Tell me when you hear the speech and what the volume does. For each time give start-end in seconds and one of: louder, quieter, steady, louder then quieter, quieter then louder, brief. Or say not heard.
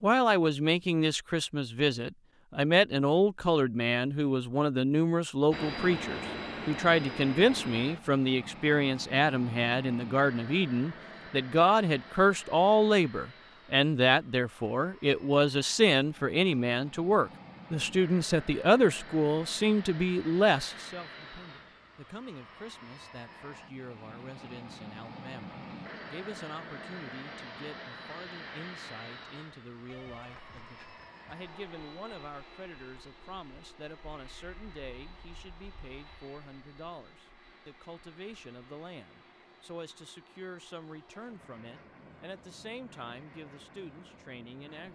0.0-44.9 quieter.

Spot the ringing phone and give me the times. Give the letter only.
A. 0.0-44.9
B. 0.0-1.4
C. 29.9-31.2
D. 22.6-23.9
C.